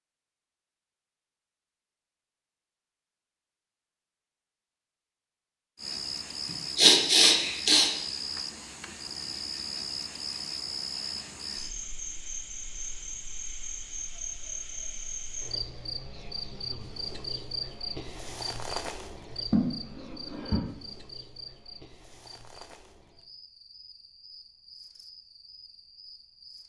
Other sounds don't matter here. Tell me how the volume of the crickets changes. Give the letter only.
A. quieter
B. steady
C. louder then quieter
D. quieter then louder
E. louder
A.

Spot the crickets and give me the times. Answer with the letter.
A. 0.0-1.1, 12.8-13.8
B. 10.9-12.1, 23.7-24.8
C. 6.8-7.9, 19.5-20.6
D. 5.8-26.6
D.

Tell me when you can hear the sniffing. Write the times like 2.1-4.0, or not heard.
6.8-7.9, 19.5-20.6.